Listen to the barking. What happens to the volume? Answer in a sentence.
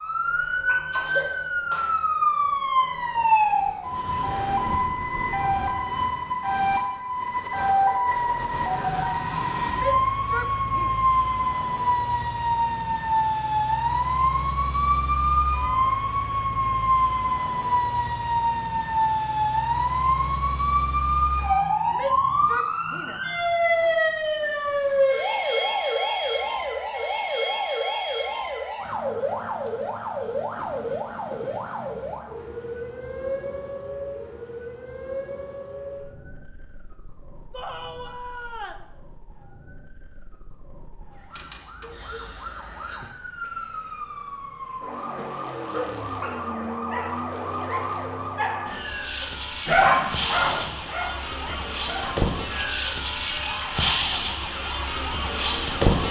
The volume of the barking goes up, then down.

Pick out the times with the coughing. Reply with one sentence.
You can hear the coughing from 0.4 to 1.9 s.